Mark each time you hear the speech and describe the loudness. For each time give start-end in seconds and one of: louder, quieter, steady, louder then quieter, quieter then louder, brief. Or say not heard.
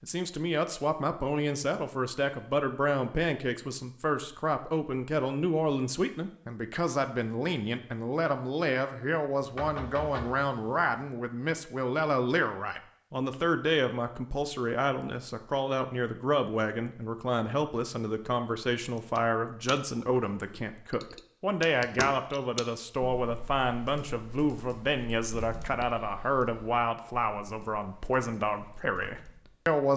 0.0-29.9 steady.